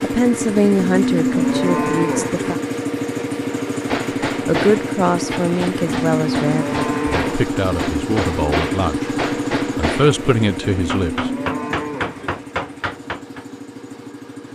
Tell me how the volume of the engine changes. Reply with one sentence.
The loudness of the engine goes down.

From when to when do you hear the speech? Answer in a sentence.
You can hear the speech from 0.0 to 2.6 s, from 4.5 to 9.2 s and from 9.8 to 11.3 s.